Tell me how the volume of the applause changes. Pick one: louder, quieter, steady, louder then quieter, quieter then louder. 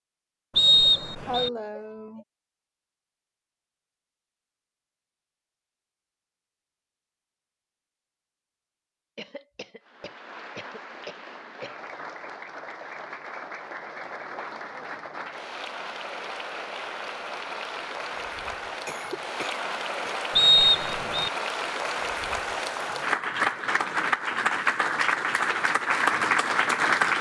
louder.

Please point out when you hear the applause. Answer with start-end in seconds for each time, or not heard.
9.8-27.1.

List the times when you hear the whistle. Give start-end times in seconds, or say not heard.
0.6-1.5, 20.4-21.3.